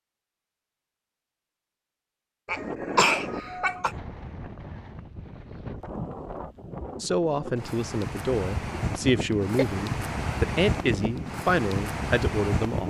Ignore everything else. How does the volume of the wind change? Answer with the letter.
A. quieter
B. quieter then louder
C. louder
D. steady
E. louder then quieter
C.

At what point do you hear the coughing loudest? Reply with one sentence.
The loudest moment of the coughing is at 3 seconds.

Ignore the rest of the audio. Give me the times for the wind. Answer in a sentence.
The wind can be heard from 2.5 to 12.8 s.